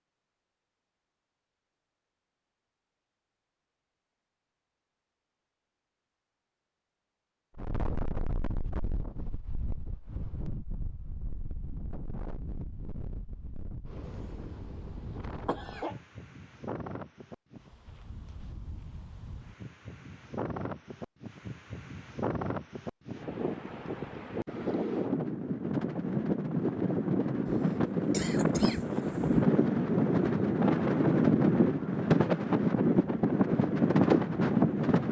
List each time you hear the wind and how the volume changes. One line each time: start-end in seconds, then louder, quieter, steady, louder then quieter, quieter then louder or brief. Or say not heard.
7.5-35.0 louder.